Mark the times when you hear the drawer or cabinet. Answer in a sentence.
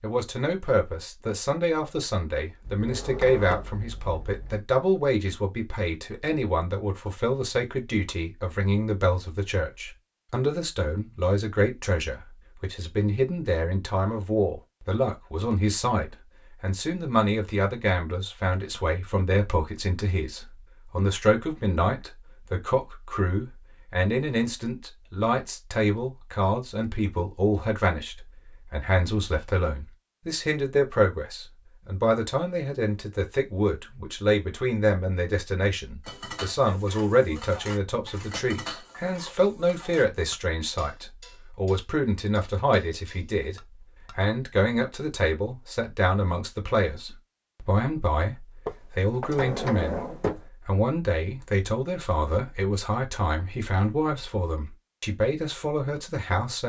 You can hear the drawer or cabinet from 2.6 to 4.6 s and from 48.6 to 50.4 s.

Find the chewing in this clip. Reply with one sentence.
The chewing can't be heard in this clip.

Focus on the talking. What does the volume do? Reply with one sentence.
The volume of the talking stays about the same.